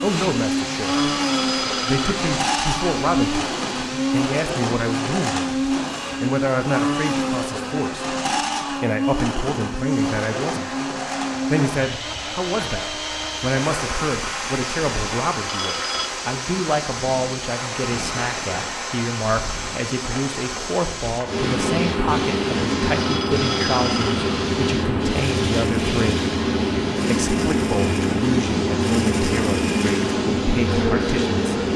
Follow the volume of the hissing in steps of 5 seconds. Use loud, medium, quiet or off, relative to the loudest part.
medium, quiet, medium, medium, loud, loud, loud.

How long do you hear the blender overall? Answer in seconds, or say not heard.
32 s.